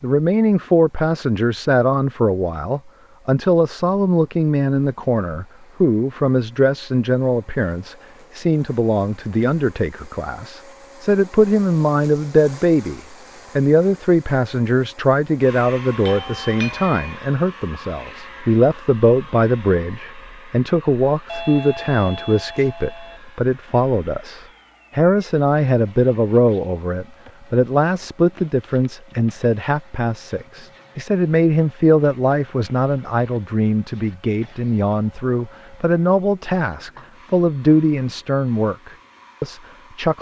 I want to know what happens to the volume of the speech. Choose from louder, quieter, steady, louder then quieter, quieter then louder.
steady.